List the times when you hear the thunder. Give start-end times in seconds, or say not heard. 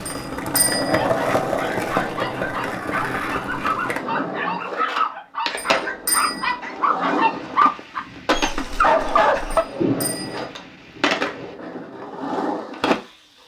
7.3-11.6.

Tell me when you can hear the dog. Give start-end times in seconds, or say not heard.
0.9-9.7.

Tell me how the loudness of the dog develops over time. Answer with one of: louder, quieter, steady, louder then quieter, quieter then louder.
louder.